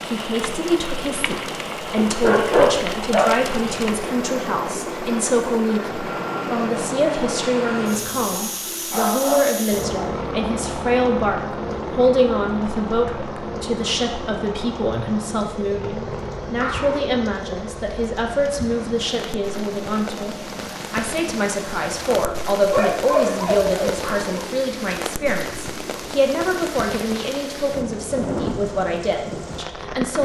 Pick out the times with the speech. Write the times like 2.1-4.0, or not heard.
0.0-30.2.